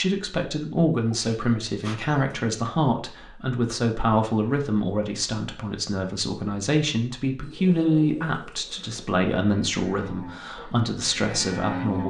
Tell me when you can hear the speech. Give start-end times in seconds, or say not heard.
0.0-12.0.